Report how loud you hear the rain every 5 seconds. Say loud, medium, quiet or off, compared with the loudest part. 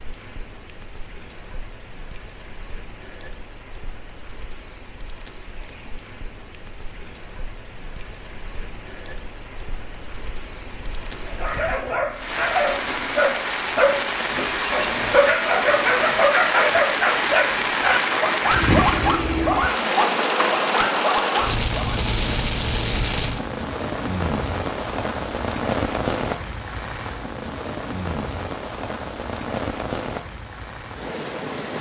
quiet, quiet, medium, loud, loud, medium, medium.